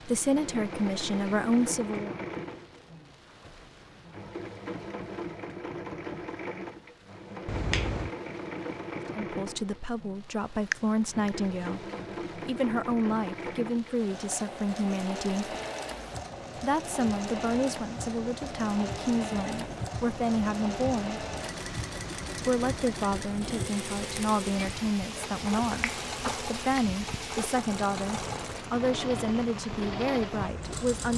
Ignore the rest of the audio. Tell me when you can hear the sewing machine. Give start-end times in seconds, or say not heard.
0.0-31.1.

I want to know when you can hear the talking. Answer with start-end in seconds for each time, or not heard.
0.1-2.1, 9.2-15.6, 16.6-21.2, 22.4-31.1.